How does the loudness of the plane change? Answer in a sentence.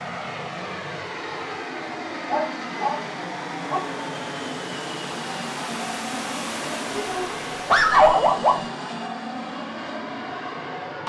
The volume of the plane stays about the same.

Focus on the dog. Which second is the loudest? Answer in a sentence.
The volume of the dog peaks at 8 seconds.